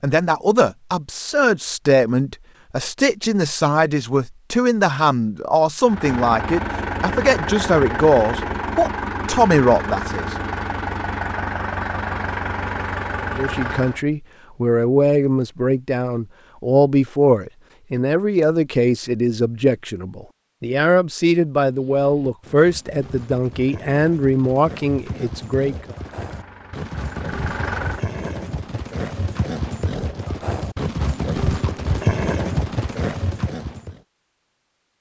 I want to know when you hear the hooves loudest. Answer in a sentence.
The loudest moment of the hooves is at 32 seconds.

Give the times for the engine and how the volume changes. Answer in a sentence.
The engine can be heard from 5.8 to 14.0 s, at a steady volume; and briefly from 25.9 to 28.1 s.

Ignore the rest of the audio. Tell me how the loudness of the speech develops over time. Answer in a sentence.
The volume of the speech stays about the same.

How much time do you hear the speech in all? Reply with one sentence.
You can hear the speech for 23 seconds altogether.